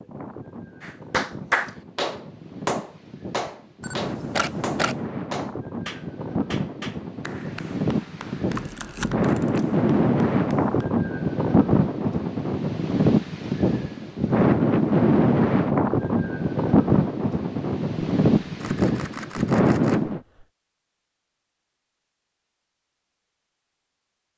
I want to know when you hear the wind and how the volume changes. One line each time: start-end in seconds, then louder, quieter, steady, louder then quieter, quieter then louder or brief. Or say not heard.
0.0-20.2 louder.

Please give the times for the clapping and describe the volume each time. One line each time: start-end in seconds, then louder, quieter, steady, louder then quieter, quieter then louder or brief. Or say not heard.
0.8-10.9 quieter.